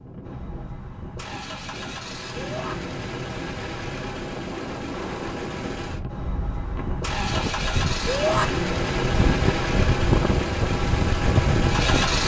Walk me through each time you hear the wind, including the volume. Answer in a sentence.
You can hear the wind from 0.0 to 12.2 s, getting louder.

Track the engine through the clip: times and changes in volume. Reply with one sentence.
The engine can be heard from 0.1 to 12.2 s, getting louder.